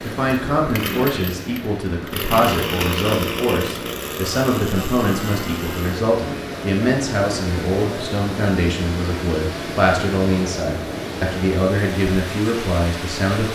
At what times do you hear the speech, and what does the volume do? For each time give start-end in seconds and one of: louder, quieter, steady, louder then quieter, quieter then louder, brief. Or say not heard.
0.0-13.5 steady.